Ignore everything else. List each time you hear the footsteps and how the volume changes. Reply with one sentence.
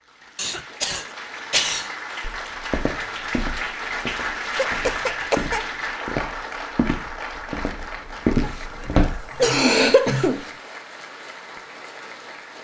The footsteps can be heard from 2.2 to 9.2 s, getting quieter then louder.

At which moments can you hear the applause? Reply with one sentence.
You can hear the applause from 0.0 to 12.5 s.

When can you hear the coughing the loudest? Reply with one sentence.
The loudest moment of the coughing is at 10 seconds.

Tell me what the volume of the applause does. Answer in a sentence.
The volume of the applause goes up, then down.